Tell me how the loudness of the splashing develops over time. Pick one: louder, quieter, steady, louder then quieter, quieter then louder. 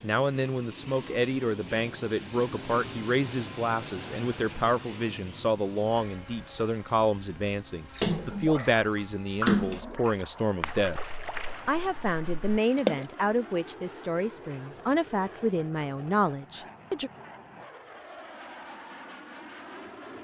louder then quieter.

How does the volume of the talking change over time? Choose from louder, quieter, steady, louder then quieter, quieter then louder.
steady.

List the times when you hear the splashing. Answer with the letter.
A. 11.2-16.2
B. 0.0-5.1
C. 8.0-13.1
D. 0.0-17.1
C.